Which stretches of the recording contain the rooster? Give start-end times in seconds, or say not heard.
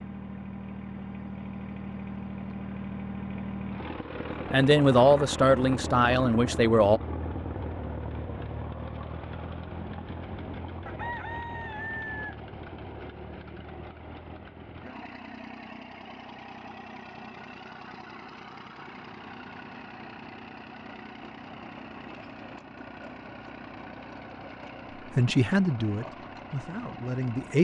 10.8-12.4.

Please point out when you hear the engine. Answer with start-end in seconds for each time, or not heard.
0.0-27.5.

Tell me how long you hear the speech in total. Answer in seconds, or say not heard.
5 s.